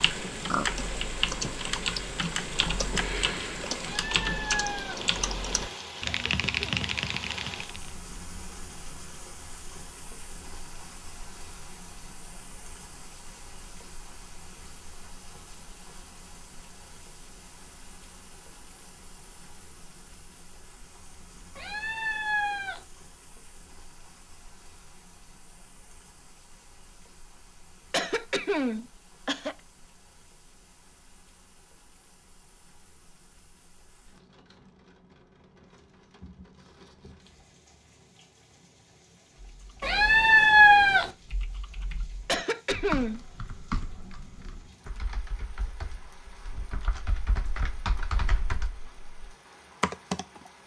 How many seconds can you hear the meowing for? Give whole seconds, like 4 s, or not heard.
4 s.